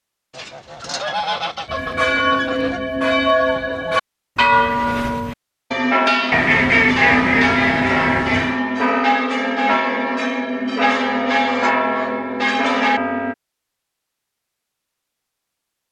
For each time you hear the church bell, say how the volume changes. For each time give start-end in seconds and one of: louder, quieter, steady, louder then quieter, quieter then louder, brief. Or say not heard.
1.6-13.3 steady.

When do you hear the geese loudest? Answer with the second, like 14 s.
7 s.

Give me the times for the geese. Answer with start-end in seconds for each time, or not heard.
0.3-2.8, 6.3-8.6, 11.1-12.2.